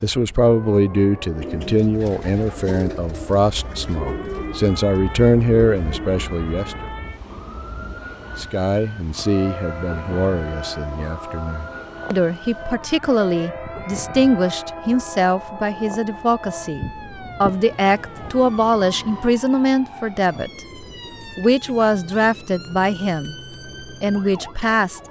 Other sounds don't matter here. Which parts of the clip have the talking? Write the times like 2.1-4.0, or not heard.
0.0-6.9, 8.3-20.6, 21.4-23.4, 24.0-25.0.